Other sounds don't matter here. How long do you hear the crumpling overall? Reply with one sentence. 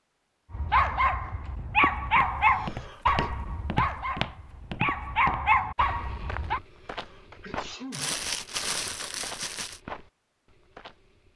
You can hear the crumpling for 2 seconds altogether.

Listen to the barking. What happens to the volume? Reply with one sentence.
The loudness of the barking goes down, then up.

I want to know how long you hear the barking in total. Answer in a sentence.
The barking can be heard for 6 seconds in total.